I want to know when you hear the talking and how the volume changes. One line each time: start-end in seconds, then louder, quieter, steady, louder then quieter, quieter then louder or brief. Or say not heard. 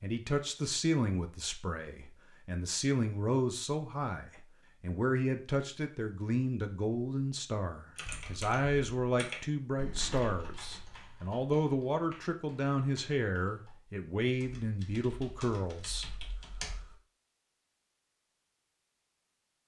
0.0-16.1 steady.